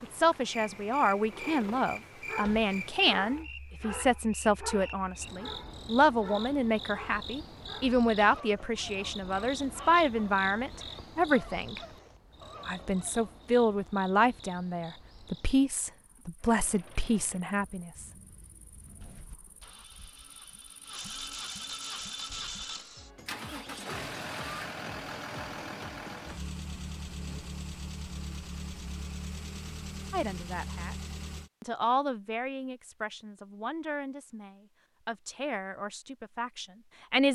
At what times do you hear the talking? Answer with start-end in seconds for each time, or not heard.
0.0-11.8, 12.7-18.1, 30.1-30.9, 31.6-37.3.